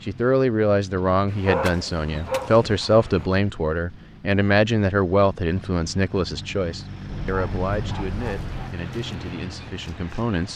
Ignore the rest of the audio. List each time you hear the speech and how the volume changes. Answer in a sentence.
You can hear the speech from 0.0 to 10.5 s, getting quieter.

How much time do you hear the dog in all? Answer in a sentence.
The dog can be heard for 3 seconds in total.